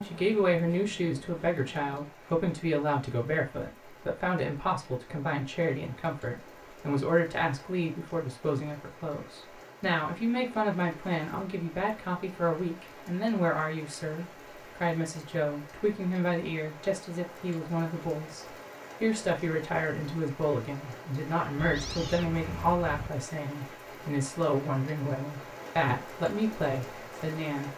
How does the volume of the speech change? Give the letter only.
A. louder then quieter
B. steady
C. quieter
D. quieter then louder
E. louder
B.